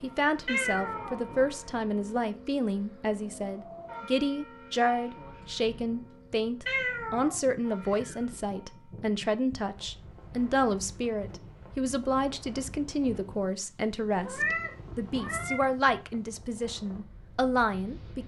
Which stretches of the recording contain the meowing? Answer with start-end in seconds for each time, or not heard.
0.5-1.2, 6.7-8.2, 14.2-15.6.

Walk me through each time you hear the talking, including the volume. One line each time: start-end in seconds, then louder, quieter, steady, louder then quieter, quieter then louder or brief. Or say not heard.
0.0-18.2 steady.